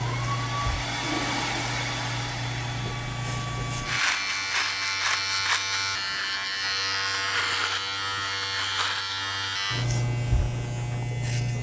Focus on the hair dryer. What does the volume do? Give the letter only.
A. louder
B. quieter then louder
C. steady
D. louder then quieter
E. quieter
E.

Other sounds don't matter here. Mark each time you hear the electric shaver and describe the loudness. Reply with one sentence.
The electric shaver can be heard from 0.0 to 11.5 s, getting louder.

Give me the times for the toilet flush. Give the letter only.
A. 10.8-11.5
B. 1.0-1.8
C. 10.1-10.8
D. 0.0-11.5
B.